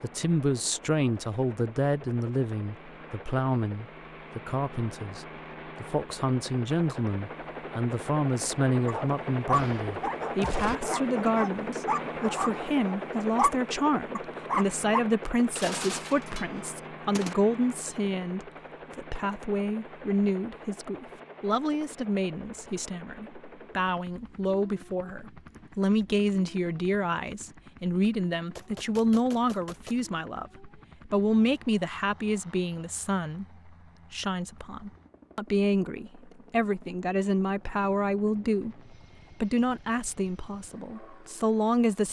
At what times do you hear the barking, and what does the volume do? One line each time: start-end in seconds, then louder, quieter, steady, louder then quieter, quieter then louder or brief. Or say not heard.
8.8-15.0 quieter then louder.